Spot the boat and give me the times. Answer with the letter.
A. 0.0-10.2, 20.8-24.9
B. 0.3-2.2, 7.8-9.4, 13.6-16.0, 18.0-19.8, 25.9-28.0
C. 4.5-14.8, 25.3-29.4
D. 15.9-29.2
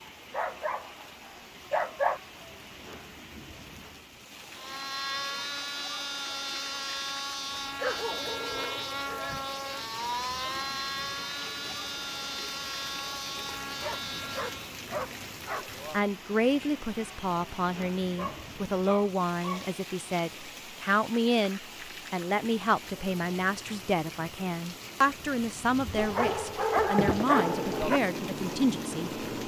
C.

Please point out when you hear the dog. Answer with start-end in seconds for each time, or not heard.
0.3-2.2, 7.8-9.4, 13.6-16.0, 18.0-19.8, 25.9-28.0.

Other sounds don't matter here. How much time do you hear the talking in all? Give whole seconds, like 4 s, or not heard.
13 s.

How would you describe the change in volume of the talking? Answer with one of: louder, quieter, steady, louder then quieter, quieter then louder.
steady.